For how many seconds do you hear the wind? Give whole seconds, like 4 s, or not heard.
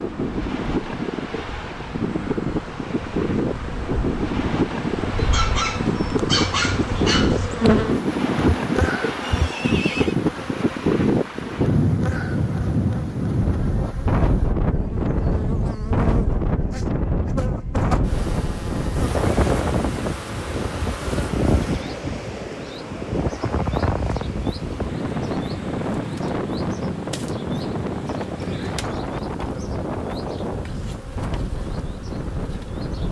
33 s.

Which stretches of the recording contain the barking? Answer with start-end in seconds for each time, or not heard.
5.3-7.4.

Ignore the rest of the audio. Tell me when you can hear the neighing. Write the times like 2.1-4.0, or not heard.
9.2-10.2, 28.4-28.9.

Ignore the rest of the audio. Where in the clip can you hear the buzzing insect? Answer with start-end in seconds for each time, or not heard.
0.0-33.0.